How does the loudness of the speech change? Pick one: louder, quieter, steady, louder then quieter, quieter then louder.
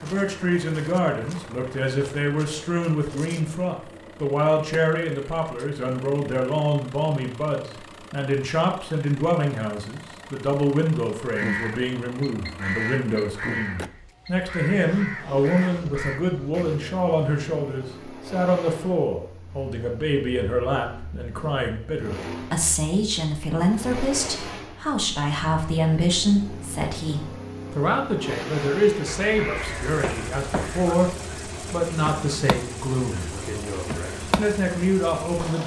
steady.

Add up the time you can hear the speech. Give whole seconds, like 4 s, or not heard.
35 s.